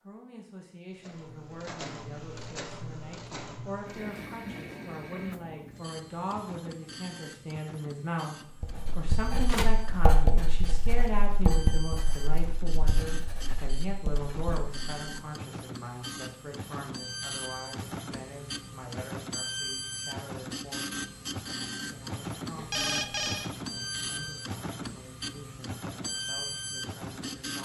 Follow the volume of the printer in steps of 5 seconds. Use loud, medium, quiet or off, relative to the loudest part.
medium, medium, medium, loud, loud, loud.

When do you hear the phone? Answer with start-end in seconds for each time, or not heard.
9.4-9.9, 22.6-23.5.